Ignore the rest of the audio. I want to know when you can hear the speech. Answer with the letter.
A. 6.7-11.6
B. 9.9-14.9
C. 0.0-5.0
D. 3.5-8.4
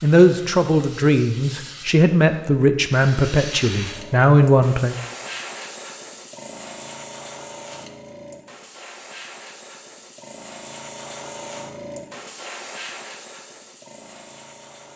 C.